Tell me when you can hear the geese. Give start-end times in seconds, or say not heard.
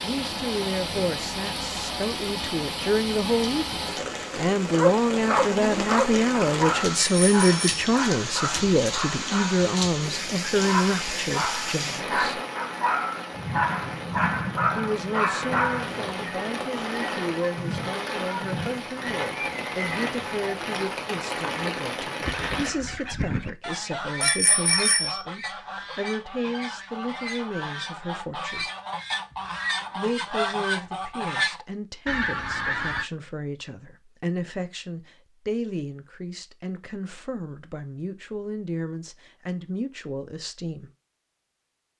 22.2-33.0.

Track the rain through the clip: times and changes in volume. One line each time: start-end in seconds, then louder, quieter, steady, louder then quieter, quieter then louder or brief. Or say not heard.
0.0-22.7 steady.